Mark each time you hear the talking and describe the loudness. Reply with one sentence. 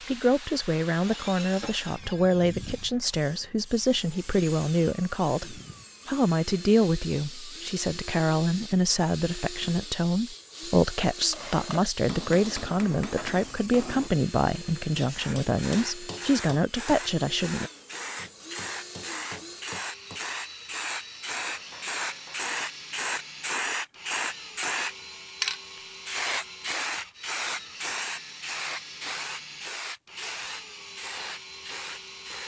The talking can be heard from 0.1 to 17.7 s, at a steady volume.